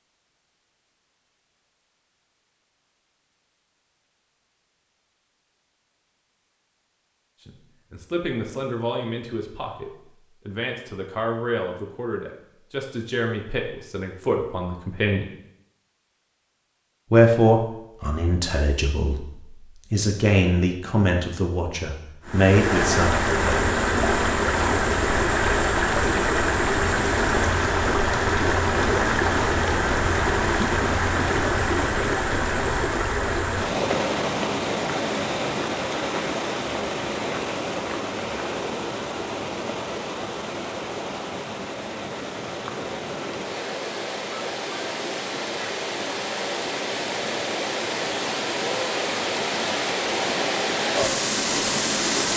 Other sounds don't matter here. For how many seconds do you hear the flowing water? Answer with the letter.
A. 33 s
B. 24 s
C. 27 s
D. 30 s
D.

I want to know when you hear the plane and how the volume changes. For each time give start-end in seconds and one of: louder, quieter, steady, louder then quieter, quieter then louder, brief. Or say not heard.
not heard.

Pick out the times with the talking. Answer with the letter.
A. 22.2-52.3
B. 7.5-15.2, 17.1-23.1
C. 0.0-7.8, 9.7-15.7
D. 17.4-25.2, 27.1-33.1
B.